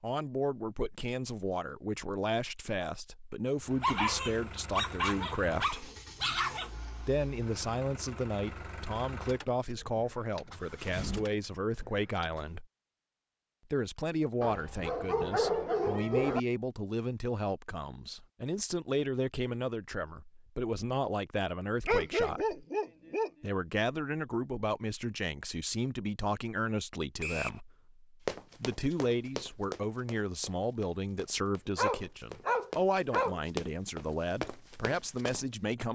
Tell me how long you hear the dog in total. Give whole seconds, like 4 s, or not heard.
8 s.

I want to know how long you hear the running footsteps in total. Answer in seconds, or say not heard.
7 s.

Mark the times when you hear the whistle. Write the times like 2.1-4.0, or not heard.
27.2-27.6.